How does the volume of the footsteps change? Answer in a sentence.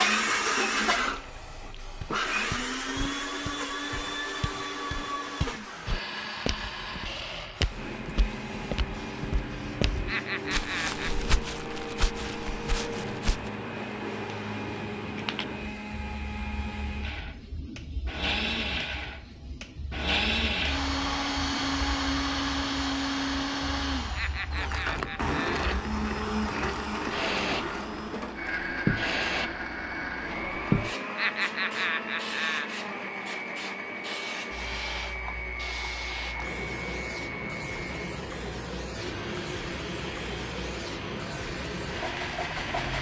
The loudness of the footsteps goes up.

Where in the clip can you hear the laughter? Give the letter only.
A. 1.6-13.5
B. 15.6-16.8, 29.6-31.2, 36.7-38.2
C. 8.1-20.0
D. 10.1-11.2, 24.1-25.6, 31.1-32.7
D.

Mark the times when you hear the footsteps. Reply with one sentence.
The footsteps can be heard from 1.6 to 13.5 s.